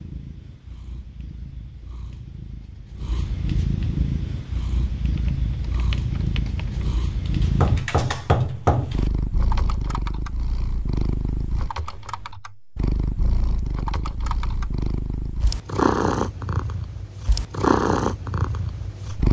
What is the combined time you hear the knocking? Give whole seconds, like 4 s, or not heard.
2 s.